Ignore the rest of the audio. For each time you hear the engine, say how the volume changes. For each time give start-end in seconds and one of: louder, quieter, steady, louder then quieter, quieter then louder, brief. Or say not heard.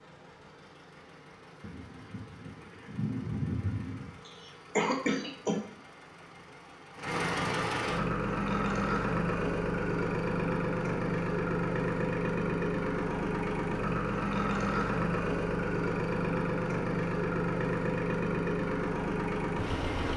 0.0-20.1 louder.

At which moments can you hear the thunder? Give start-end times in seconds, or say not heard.
1.6-4.2.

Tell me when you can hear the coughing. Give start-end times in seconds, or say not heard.
4.2-5.7.